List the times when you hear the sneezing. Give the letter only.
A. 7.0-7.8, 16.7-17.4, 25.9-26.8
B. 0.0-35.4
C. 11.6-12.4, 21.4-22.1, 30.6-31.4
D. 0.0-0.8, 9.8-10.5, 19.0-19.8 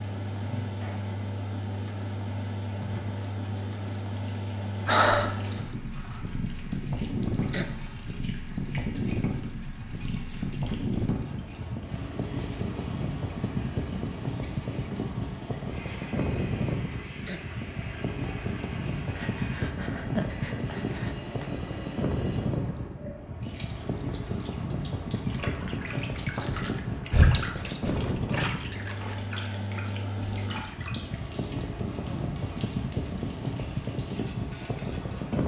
A.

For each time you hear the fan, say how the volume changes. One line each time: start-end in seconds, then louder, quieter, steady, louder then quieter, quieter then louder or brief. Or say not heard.
0.0-35.4 steady.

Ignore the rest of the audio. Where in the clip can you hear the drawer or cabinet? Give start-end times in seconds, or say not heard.
not heard.